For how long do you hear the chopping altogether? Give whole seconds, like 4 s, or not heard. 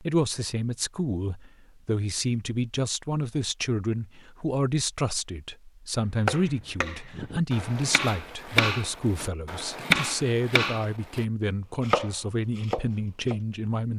7 s.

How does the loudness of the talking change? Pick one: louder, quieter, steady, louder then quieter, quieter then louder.
steady.